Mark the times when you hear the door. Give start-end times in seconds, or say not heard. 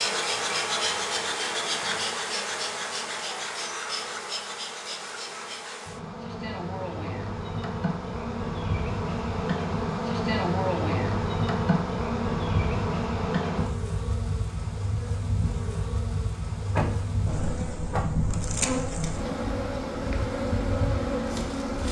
16.8-18.1.